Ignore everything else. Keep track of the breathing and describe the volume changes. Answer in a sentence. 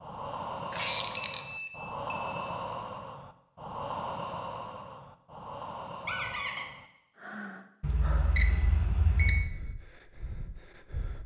The loudness of the breathing goes down.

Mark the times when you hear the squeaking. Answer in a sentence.
You can hear the squeaking from 0.7 to 1.4 s and from 6.0 to 6.7 s.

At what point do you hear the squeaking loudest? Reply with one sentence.
The loudest moment of the squeaking is at 1 second.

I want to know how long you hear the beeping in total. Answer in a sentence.
The beeping can be heard for 3 seconds in total.